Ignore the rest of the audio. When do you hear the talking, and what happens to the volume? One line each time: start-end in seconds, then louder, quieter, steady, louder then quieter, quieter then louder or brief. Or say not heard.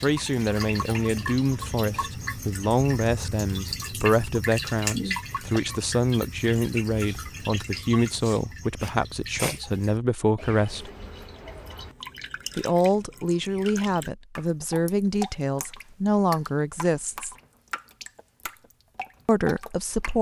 0.0-10.9 steady
12.6-17.4 steady
19.2-20.1 brief.